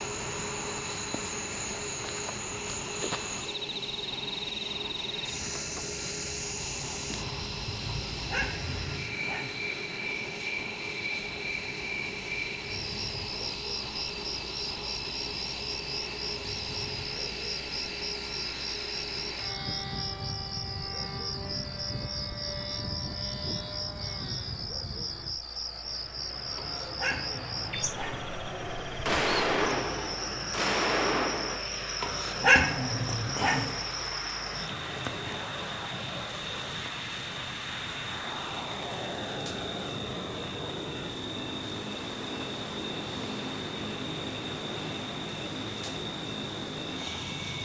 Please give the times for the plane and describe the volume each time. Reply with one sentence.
The plane can be heard from 0.0 to 47.5 s, at a steady volume.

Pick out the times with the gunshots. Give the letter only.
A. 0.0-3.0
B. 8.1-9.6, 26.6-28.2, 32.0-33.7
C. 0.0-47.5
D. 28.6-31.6
D.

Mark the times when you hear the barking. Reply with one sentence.
You can hear the barking from 8.1 to 9.6 s, from 26.6 to 28.2 s and from 32.0 to 33.7 s.